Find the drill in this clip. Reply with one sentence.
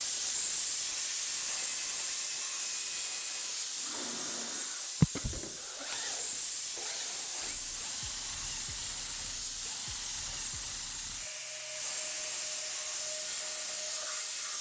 You can hear the drill from 0.0 to 14.5 s.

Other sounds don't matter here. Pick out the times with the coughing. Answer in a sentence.
You can hear the coughing from 5.0 to 5.8 s.